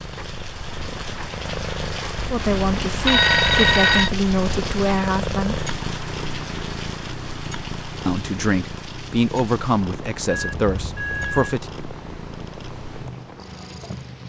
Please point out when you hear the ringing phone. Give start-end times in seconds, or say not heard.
2.2-4.1, 10.2-11.6.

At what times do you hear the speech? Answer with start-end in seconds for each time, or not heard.
2.3-5.7, 8.1-11.7.